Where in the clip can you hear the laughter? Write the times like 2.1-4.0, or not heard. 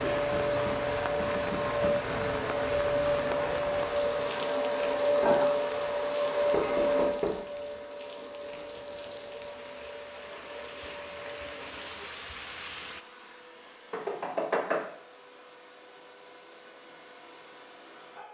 not heard.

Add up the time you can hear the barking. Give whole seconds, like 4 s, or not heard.
not heard.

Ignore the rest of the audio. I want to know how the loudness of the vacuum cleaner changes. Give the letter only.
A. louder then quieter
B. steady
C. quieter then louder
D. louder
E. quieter
E.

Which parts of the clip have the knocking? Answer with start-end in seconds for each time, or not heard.
0.3-1.9, 6.5-7.5, 13.9-14.8.